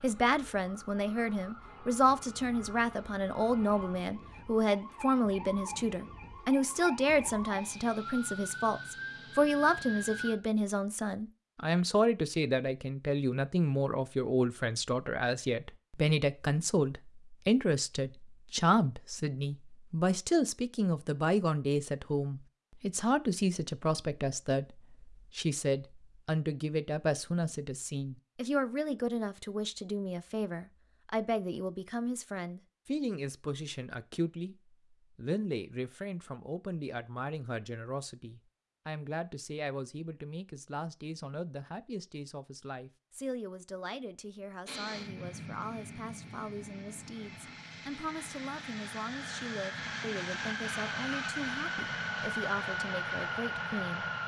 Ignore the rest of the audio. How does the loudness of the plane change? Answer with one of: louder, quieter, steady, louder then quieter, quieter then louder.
louder.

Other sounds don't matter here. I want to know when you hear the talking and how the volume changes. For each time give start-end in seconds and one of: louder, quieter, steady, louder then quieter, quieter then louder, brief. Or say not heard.
0.0-54.0 quieter.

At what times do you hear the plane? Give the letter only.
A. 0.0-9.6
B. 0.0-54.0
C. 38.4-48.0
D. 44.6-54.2
D.